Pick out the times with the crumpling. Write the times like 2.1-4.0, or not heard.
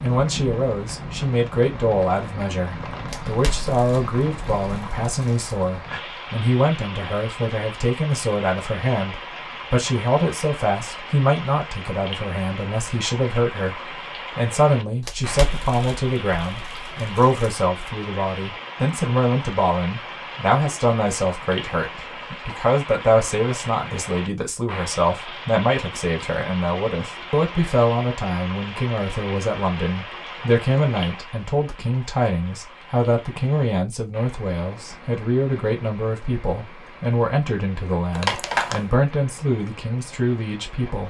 3.0-5.5, 15.0-17.6, 38.1-38.9.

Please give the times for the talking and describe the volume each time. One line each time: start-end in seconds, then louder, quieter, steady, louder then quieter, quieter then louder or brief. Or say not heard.
0.0-41.0 steady.